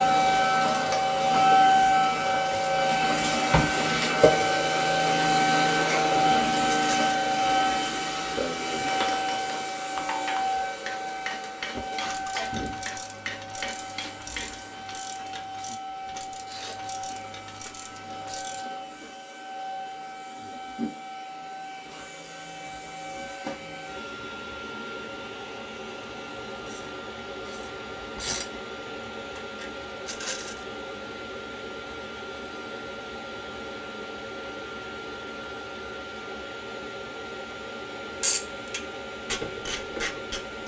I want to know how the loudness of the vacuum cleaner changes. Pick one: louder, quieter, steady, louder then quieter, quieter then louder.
quieter.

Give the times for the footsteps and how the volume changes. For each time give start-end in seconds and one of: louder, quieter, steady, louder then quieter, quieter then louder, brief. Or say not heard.
not heard.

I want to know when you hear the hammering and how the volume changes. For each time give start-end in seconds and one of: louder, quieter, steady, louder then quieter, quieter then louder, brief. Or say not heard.
9.1-14.6 steady.